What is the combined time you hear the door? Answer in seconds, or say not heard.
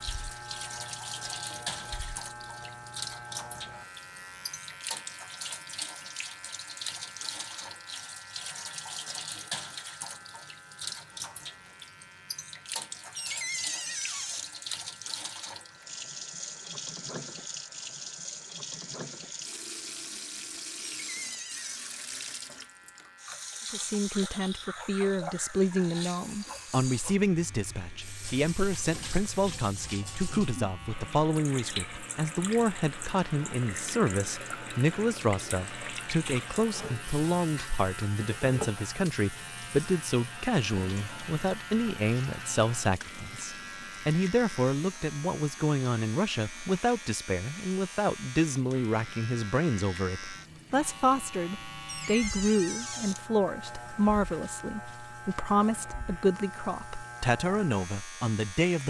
4 s.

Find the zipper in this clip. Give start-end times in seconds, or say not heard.
not heard.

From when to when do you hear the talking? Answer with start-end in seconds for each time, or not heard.
23.7-58.8.